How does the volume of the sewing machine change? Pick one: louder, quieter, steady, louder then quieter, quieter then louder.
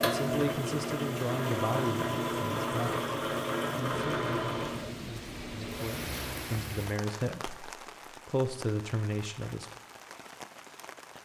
quieter.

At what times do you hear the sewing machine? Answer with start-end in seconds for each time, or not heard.
0.0-6.5.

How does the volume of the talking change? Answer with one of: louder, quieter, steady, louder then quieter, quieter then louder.
quieter then louder.